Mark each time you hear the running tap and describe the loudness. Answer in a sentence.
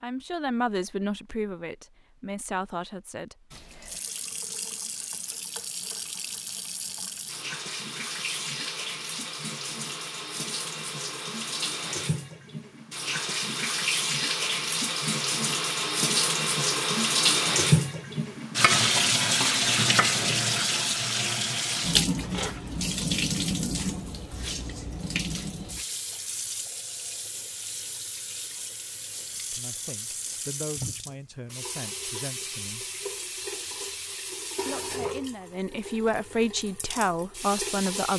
The running tap can be heard from 3.5 to 38.1 s, getting louder then quieter.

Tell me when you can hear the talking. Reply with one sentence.
You can hear the talking from 0.0 to 3.5 s, from 29.5 to 32.9 s and from 34.6 to 38.1 s.